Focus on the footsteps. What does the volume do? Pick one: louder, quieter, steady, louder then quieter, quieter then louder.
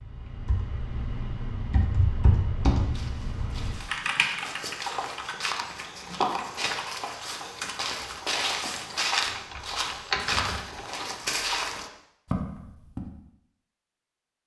louder.